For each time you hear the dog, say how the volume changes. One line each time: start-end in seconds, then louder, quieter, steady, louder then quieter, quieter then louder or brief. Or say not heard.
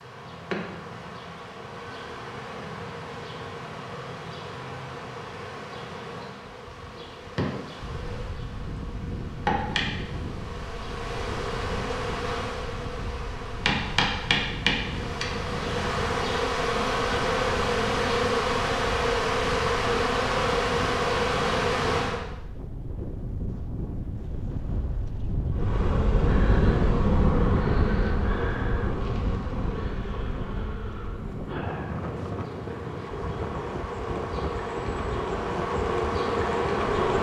not heard.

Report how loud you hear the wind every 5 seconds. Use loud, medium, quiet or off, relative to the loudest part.
off, medium, medium, medium, medium, loud, medium, medium.